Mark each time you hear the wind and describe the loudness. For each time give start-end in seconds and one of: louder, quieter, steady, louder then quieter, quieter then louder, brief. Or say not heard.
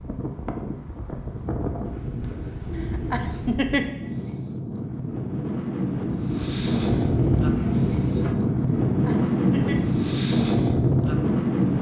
0.0-11.7 louder.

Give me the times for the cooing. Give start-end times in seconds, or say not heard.
1.9-3.6, 6.2-8.4.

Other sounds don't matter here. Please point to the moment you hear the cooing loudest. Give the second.
7 s.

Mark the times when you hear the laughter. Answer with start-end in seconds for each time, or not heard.
2.8-3.9, 8.7-9.9.